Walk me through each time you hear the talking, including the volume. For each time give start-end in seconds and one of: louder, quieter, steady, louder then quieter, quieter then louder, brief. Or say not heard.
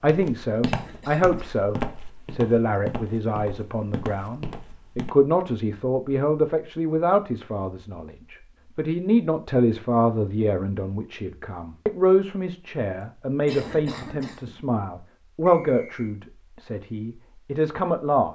0.0-18.3 steady.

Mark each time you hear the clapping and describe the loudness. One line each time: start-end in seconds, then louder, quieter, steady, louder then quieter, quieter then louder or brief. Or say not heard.
not heard.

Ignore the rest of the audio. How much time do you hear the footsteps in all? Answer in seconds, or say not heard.
5 s.